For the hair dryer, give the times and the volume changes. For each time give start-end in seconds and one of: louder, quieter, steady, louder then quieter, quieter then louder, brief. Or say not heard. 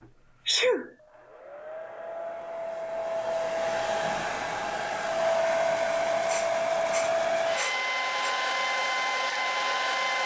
0.0-10.2 louder.